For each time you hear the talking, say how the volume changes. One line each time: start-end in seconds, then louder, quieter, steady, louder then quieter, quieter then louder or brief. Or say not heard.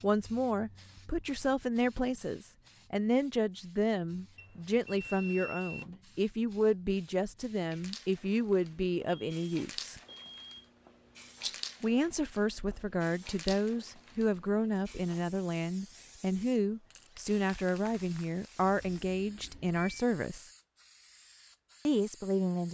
0.0-10.0 steady
11.8-20.5 steady
21.9-22.6 brief.